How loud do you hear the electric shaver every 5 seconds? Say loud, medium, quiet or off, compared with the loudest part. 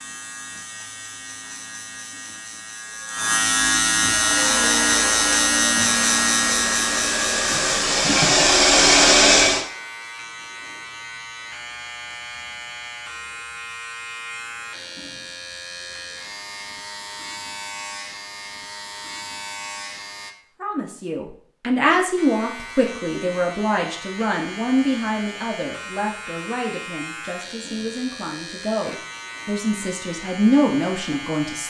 loud, loud, quiet, quiet, quiet, quiet, quiet.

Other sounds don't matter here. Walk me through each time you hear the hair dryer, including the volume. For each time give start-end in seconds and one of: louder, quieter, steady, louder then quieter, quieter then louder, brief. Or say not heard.
4.1-9.7 louder.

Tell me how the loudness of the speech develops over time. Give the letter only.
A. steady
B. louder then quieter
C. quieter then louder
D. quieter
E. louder
C.